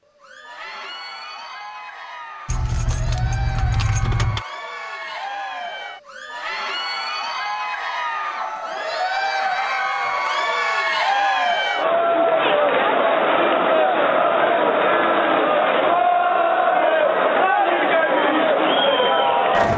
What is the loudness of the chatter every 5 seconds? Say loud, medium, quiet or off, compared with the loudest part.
quiet, medium, loud, loud.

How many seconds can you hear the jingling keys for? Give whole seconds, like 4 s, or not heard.
2 s.